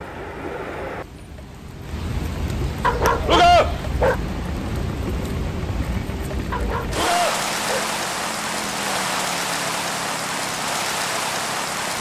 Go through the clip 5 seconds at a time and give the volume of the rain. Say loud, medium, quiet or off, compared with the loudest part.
medium, loud, loud.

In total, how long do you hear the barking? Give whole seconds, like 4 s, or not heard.
3 s.